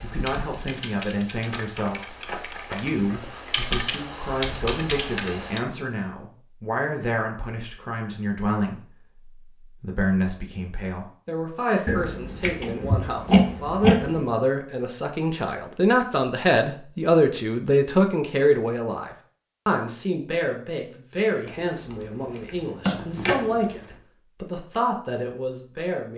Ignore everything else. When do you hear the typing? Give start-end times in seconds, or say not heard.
0.0-5.6.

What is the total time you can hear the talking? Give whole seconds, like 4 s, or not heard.
26 s.